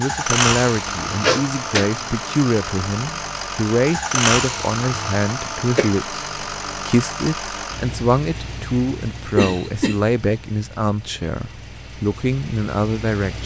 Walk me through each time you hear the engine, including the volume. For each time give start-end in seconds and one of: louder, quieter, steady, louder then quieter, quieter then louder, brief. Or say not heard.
0.0-13.4 quieter.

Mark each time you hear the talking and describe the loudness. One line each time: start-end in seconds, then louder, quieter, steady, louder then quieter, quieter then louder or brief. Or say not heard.
0.0-13.4 steady.